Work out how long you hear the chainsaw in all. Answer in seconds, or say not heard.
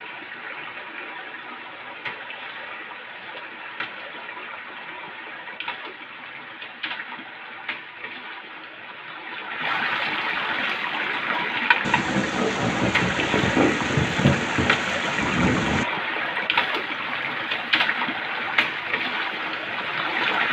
not heard.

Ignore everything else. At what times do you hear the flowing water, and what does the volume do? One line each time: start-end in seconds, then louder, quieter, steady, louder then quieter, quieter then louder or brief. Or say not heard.
0.0-20.4 louder.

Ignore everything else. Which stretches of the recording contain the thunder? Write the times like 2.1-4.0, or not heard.
11.8-15.8.